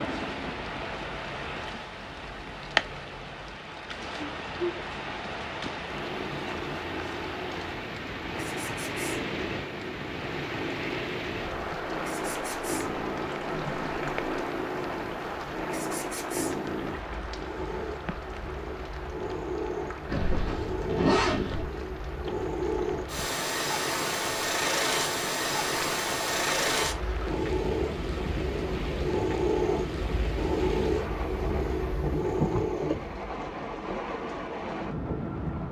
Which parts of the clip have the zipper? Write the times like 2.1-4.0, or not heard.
20.1-21.6.